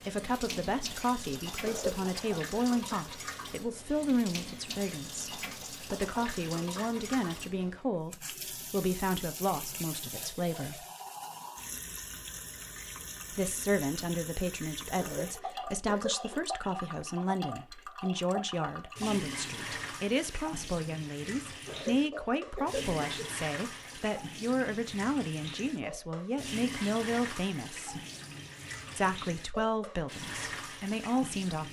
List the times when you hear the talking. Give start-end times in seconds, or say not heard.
0.1-10.8, 13.3-28.0, 28.9-31.6.